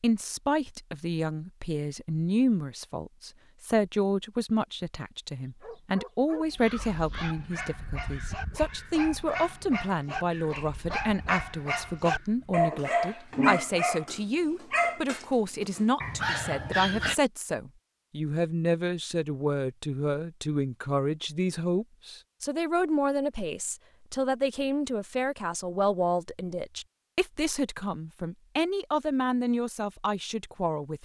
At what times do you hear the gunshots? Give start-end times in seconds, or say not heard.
not heard.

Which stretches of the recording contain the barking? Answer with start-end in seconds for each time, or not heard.
5.4-17.1.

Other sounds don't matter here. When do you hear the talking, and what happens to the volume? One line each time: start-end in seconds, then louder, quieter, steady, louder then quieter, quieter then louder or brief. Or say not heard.
0.0-31.0 steady.